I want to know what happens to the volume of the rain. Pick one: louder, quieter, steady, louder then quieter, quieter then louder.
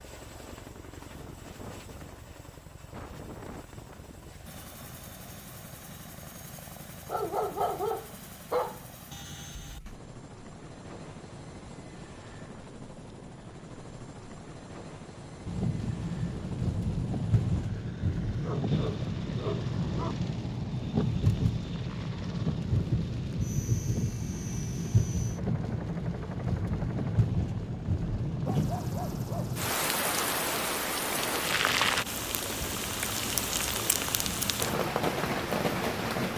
steady.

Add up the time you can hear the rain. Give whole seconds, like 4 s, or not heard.
21 s.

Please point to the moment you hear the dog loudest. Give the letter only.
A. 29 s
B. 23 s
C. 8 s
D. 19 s
C.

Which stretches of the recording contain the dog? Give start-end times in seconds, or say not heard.
7.0-8.8, 18.4-20.1, 28.0-29.6.